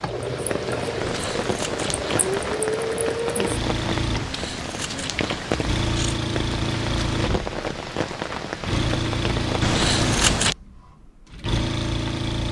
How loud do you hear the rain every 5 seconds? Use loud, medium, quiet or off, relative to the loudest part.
loud, loud, off.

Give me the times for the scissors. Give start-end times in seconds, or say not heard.
1.0-2.5, 4.2-6.2, 9.6-10.6.